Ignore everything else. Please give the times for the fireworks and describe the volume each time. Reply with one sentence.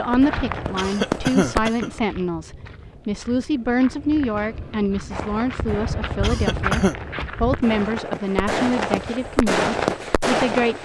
You can hear the fireworks briefly from 0.0 to 1.7 s; and from 5.1 to 10.8 s, getting louder.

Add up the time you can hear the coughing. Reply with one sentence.
The coughing can be heard for 2 seconds in total.